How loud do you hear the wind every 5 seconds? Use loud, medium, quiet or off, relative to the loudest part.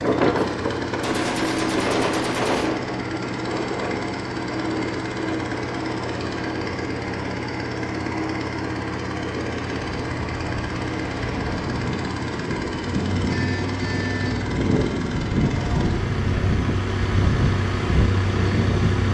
loud, medium, loud, loud.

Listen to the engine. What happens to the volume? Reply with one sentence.
The loudness of the engine stays about the same.